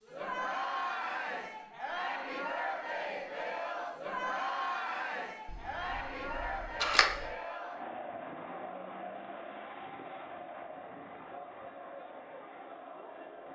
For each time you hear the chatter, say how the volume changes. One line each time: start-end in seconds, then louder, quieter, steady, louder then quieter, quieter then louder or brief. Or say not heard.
0.0-13.5 quieter.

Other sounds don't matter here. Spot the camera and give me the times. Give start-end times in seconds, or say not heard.
5.5-7.3.